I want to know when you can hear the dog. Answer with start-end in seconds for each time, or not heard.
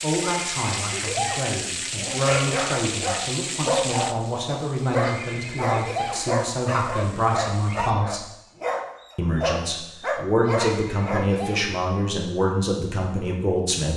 1.9-11.3.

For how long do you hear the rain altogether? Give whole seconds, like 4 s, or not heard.
8 s.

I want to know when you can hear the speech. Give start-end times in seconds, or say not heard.
0.0-8.2, 9.2-13.9.